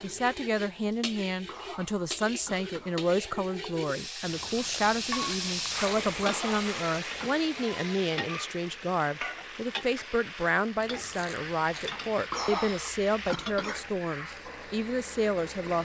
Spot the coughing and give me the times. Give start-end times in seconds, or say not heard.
1.4-3.0, 6.2-7.3, 12.3-13.8.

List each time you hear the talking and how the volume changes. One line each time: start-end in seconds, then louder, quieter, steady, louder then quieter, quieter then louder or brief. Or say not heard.
0.0-15.8 steady.